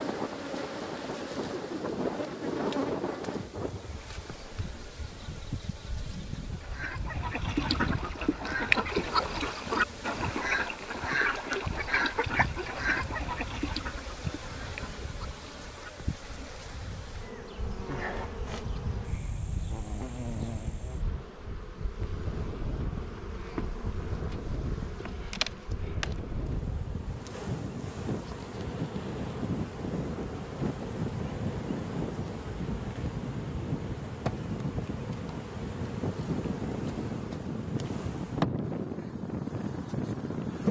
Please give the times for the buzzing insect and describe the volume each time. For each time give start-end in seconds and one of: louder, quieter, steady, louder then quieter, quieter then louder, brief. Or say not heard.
0.0-40.6 steady.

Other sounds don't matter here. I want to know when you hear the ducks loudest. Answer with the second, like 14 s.
9 s.